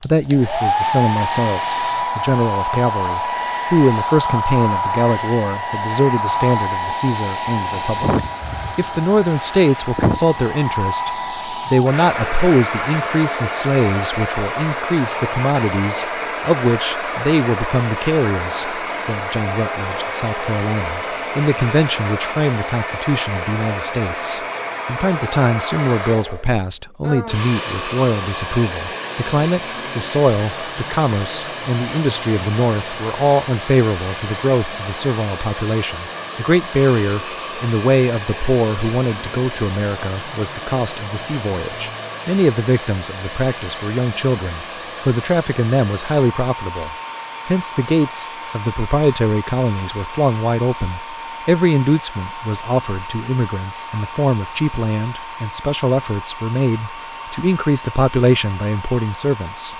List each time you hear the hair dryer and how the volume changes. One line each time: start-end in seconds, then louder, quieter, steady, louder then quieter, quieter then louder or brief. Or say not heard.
0.0-59.7 quieter.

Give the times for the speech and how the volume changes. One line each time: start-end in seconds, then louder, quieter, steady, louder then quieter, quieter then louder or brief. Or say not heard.
0.0-59.7 steady.